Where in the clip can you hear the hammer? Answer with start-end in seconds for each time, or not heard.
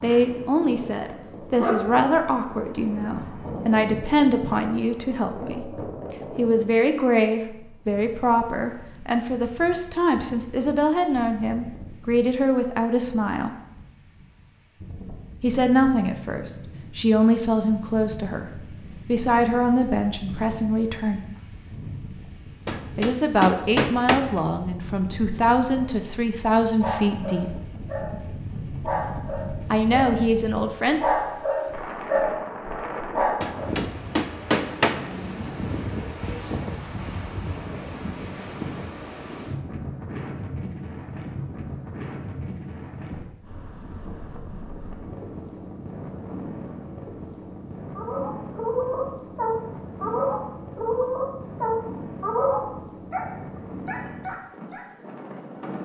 22.6-24.4, 33.4-35.0.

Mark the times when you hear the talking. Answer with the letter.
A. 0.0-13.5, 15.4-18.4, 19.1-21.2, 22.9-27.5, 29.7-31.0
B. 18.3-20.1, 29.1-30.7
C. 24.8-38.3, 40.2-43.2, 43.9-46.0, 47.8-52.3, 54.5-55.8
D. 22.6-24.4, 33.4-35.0
A.